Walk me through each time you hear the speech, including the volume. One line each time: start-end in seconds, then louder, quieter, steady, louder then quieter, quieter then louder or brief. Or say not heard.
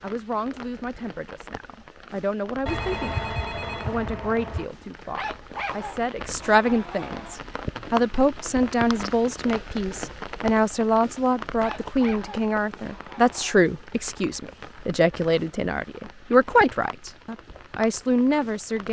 0.0-18.8 louder.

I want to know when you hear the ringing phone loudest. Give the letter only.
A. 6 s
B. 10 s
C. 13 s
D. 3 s
D.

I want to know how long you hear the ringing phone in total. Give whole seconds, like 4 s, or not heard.
2 s.